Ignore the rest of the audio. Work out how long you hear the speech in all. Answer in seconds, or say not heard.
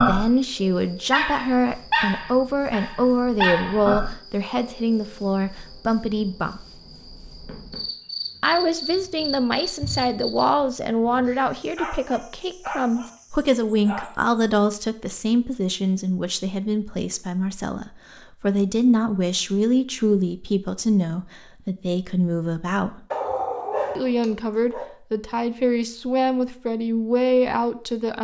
25 s.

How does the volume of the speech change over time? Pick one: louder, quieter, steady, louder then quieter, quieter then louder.
steady.